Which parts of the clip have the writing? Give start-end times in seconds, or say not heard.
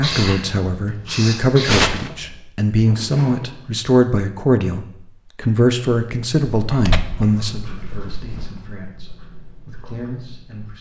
0.0-2.4, 6.5-10.7.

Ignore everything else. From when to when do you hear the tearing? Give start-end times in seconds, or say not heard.
1.6-2.1, 6.8-8.5.